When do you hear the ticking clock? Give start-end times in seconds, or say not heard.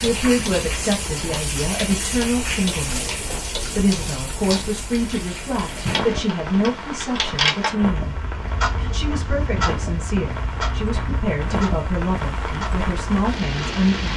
0.0-13.9.